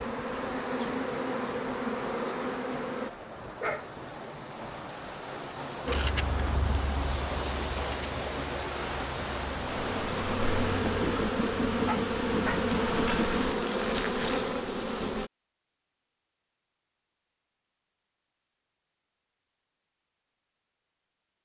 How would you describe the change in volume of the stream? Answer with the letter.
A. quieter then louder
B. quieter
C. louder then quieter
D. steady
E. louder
E.